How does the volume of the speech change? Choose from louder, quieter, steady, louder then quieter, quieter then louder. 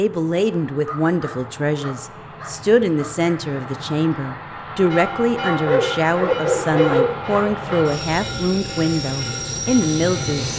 steady.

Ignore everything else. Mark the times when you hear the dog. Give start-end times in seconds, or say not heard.
0.8-3.3, 5.4-7.8.